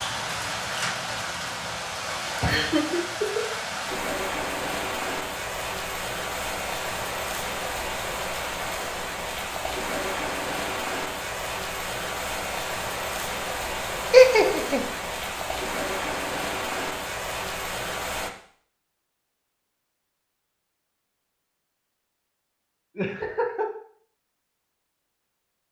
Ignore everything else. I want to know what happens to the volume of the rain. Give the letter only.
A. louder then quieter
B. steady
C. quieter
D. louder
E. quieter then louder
B.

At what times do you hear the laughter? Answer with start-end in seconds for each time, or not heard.
2.4-3.5, 14.1-14.8, 22.9-23.6.